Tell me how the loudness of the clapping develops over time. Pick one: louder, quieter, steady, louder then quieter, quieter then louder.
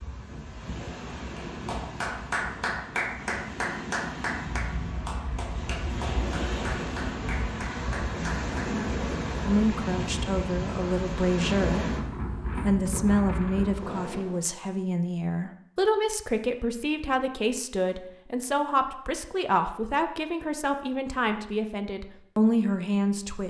quieter.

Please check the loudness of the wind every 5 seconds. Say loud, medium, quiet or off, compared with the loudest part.
medium, loud, loud, off, off.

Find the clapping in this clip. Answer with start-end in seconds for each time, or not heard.
1.4-8.8.